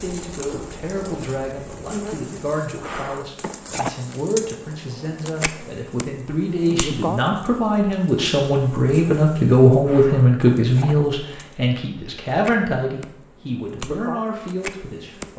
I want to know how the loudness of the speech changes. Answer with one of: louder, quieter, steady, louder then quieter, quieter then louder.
louder then quieter.